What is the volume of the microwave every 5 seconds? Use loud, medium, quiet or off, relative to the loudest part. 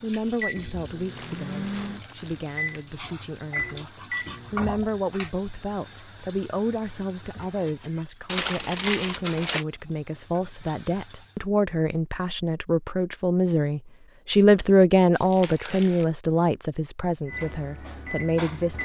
loud, off, off, loud.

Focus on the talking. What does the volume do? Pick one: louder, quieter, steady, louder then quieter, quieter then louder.
louder.